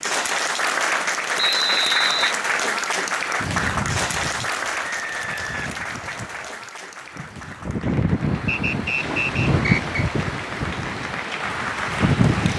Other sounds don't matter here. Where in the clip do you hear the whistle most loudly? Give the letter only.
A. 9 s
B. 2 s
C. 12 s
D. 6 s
B.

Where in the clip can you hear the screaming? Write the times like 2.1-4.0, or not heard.
not heard.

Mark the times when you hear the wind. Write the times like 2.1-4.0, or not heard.
3.4-12.5.